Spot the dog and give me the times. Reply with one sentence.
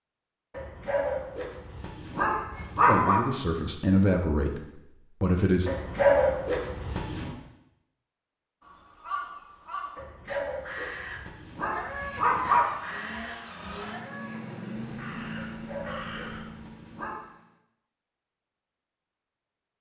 The dog can be heard from 0.6 to 3.2 s, from 5.7 to 7.3 s, from 9.9 to 12.7 s and from 15.5 to 17.1 s.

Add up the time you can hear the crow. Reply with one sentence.
You can hear the crow for 8 seconds altogether.